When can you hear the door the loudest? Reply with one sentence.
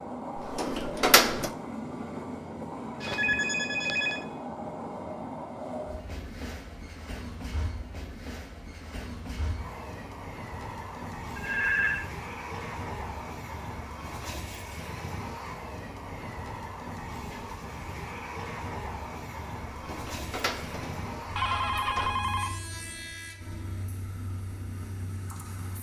The loudest moment of the door is at 1 second.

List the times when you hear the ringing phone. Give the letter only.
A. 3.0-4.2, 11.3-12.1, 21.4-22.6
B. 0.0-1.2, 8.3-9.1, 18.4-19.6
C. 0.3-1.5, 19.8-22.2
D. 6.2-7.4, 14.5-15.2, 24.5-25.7
A.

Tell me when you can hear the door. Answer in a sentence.
The door can be heard from 0.3 to 1.5 s and from 19.8 to 22.2 s.